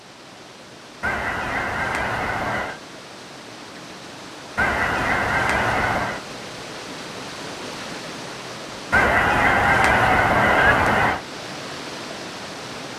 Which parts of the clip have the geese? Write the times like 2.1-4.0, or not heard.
1.0-2.8, 4.5-6.2, 8.9-11.2.